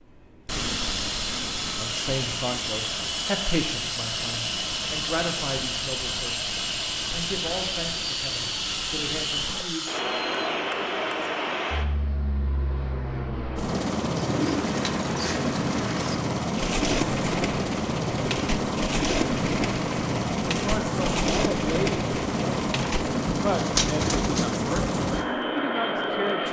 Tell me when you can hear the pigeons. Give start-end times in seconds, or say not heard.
14.2-25.2.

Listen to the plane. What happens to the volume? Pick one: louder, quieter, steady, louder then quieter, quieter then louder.
steady.